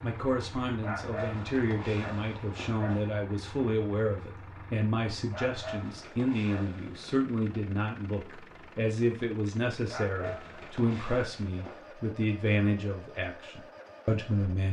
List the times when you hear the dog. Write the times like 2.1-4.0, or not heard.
0.8-3.0, 5.3-7.2, 9.9-11.9.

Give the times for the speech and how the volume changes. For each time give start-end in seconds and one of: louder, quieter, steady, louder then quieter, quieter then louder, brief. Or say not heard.
0.0-14.6 steady.